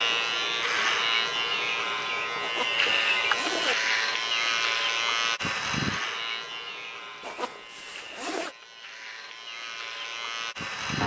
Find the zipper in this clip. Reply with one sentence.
The zipper can be heard from 2.4 to 3.8 s and from 7.2 to 8.6 s.